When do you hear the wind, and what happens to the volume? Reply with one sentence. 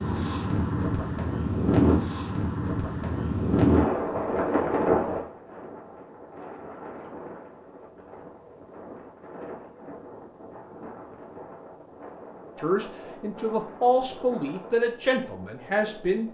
The wind can be heard from 0.0 to 16.2 s, getting quieter.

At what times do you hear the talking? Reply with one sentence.
The talking can be heard from 12.6 to 16.2 s.